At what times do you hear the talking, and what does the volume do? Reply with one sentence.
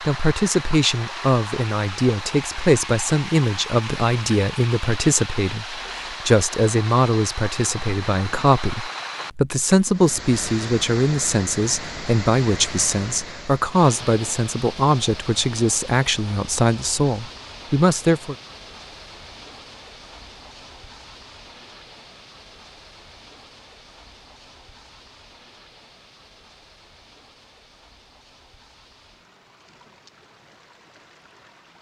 The talking can be heard from 0.0 to 18.4 s, at a steady volume.